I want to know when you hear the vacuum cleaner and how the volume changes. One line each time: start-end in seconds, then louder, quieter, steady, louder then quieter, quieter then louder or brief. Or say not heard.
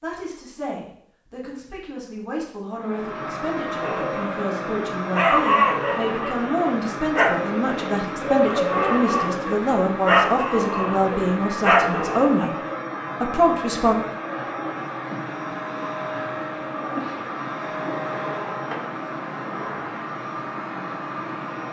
2.6-21.6 steady.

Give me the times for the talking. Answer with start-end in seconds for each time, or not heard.
0.0-12.6, 13.2-13.9.